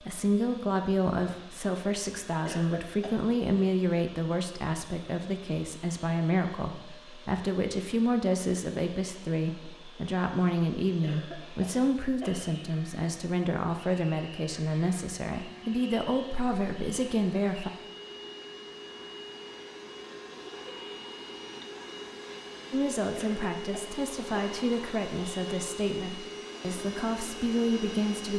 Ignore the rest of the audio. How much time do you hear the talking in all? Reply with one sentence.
You can hear the talking for 23 seconds altogether.